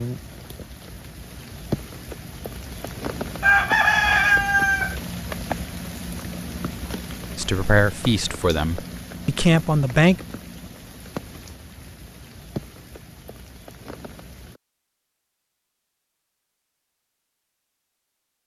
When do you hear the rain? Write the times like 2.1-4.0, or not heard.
0.0-14.6.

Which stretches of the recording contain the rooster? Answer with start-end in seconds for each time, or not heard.
3.4-5.0.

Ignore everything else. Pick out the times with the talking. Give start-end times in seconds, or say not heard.
7.3-10.2.